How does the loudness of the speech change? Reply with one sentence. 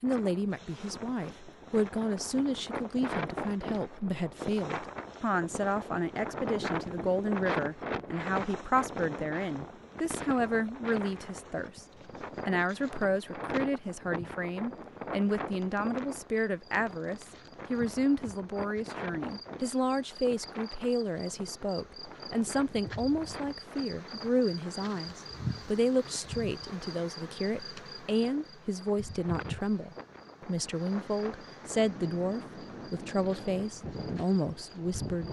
The volume of the speech stays about the same.